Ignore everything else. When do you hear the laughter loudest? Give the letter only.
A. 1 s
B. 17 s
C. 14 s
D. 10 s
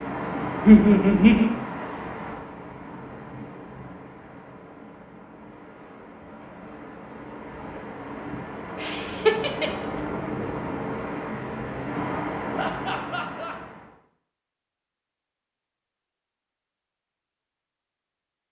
A.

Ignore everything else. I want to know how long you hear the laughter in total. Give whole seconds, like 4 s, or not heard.
3 s.